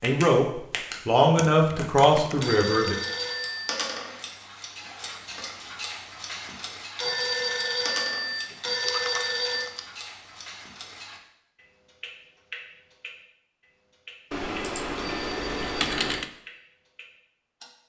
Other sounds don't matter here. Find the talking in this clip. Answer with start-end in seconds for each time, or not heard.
0.0-3.0.